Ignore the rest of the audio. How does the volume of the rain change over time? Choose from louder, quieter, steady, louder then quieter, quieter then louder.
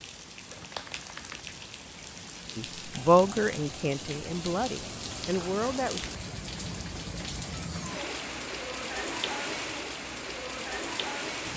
louder.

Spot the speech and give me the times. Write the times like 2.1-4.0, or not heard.
2.5-6.0.